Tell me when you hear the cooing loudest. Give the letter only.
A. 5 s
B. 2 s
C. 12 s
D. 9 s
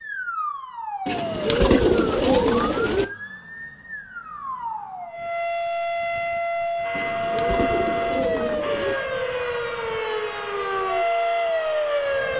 B.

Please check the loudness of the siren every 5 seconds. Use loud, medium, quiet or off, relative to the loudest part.
medium, loud, loud.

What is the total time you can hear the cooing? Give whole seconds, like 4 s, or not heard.
4 s.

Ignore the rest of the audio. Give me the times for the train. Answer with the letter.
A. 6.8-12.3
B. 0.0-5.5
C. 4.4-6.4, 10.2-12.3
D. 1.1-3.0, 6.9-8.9
A.